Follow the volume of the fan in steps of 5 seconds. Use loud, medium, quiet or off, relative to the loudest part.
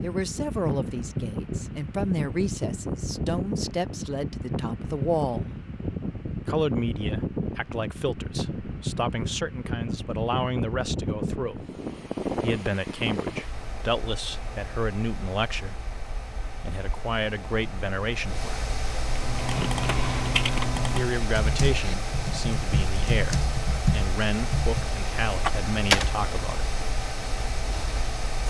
loud, loud, loud, medium, loud, loud.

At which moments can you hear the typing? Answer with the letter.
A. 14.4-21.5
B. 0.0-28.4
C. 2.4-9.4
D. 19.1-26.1
D.